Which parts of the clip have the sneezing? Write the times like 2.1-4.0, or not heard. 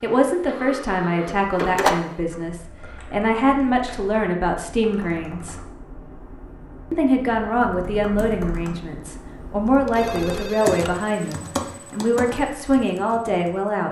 not heard.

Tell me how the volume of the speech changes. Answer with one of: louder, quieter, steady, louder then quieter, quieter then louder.
steady.